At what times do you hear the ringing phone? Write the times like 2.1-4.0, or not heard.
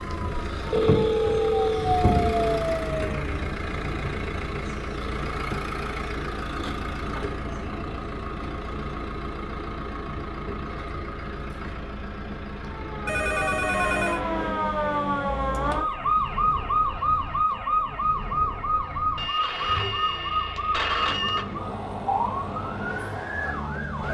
0.1-2.6, 13.1-14.2, 19.1-21.4.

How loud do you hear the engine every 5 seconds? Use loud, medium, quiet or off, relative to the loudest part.
loud, loud, medium, medium, medium.